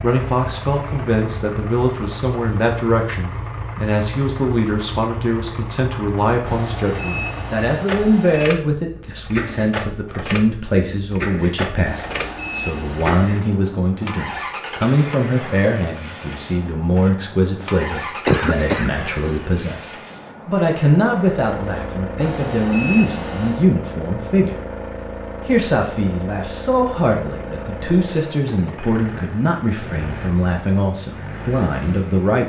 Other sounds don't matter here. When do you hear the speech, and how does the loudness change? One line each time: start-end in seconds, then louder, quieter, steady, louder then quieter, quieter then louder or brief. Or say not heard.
0.0-32.4 steady.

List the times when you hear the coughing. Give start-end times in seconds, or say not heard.
17.8-19.4.